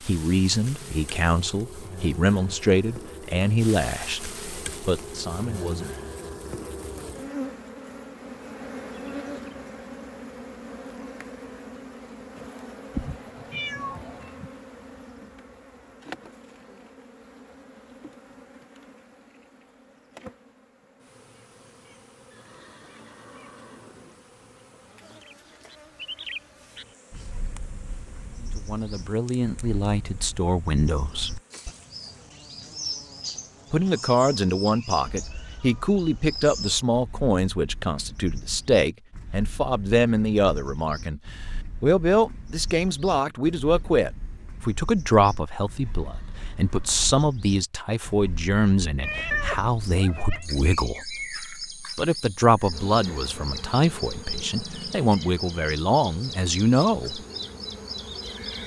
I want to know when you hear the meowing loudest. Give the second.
49 s.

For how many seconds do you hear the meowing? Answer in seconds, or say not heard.
3 s.